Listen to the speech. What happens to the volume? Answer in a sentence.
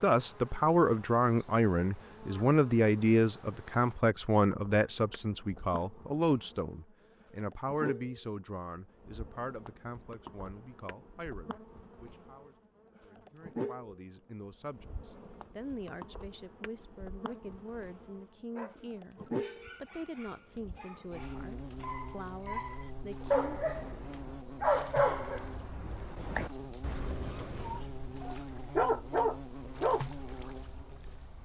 The loudness of the speech goes down.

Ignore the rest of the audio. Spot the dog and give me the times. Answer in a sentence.
You can hear the dog from 18.5 to 30.1 s.